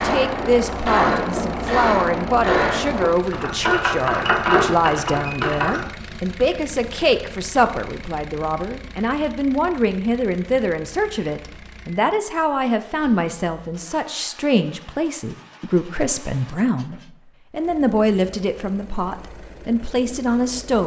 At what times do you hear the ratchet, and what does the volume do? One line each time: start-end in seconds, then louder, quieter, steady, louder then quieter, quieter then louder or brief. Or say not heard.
0.0-5.8 steady.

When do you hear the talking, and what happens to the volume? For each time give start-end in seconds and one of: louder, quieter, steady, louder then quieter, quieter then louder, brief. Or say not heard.
0.0-20.8 steady.